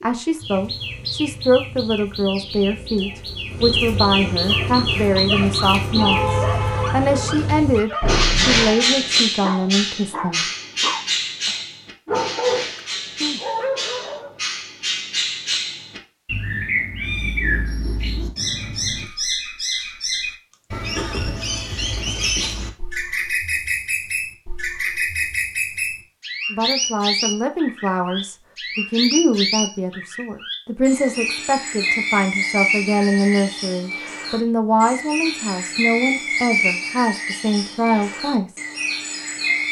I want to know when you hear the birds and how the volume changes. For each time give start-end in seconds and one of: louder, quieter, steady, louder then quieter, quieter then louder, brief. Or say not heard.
0.0-39.6 steady.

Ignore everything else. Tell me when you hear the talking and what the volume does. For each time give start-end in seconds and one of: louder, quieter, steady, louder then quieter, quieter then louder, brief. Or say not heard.
0.0-10.4 steady
26.5-38.5 steady.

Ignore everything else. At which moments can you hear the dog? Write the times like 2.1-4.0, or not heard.
4.3-14.3.